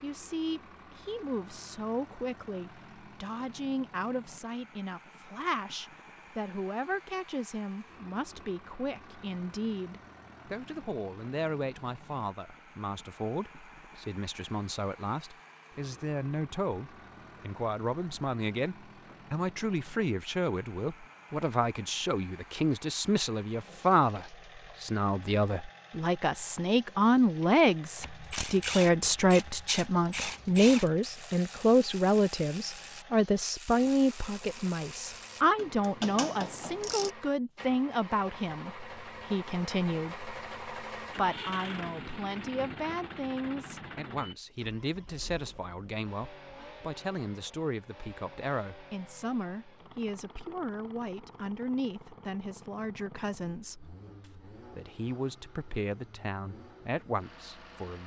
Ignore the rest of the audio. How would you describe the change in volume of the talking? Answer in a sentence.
The loudness of the talking goes up, then down.